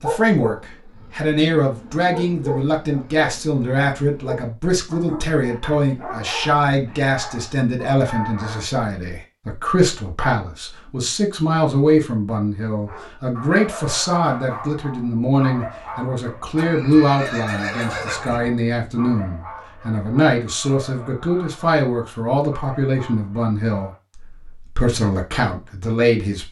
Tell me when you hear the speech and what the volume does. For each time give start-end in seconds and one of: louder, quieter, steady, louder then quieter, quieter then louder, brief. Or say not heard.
0.0-26.4 steady.